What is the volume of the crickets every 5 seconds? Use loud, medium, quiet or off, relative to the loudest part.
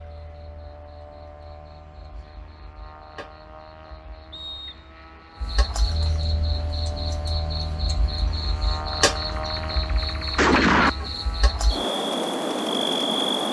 quiet, medium, loud.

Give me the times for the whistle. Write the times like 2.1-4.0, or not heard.
4.3-4.9.